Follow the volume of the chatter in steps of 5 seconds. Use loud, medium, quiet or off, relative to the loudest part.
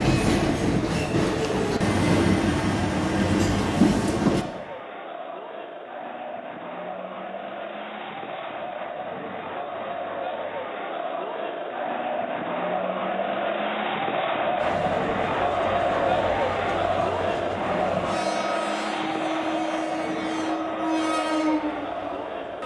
medium, medium, loud, loud, medium.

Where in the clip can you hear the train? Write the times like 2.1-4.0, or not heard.
0.0-4.5, 14.6-22.6.